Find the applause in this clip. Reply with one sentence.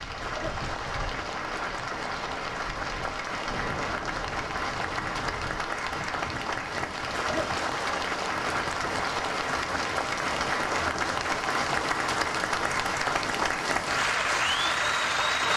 You can hear the applause from 0.0 to 15.5 s.